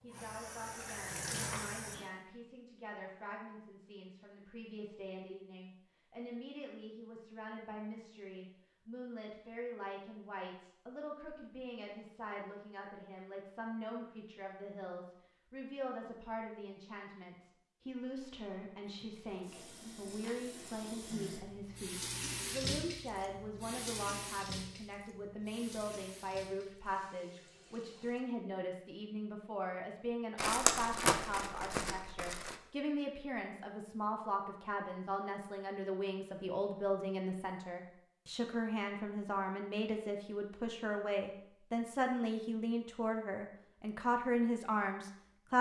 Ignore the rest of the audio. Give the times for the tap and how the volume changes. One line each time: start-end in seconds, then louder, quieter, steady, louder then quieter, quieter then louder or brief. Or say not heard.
0.0-2.1 brief
18.9-28.2 louder then quieter.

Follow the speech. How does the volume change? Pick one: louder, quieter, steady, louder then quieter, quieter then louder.
louder.